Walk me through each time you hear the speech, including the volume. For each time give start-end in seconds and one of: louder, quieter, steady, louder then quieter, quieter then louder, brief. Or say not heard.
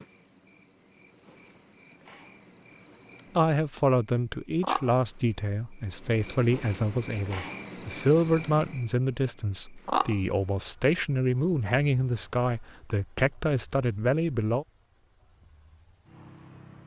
3.4-14.7 steady.